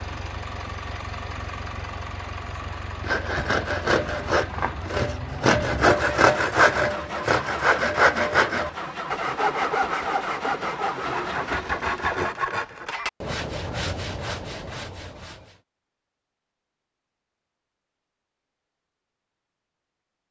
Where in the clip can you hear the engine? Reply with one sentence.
You can hear the engine from 0.0 to 12.2 s.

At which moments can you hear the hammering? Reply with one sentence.
You can't hear the hammering here.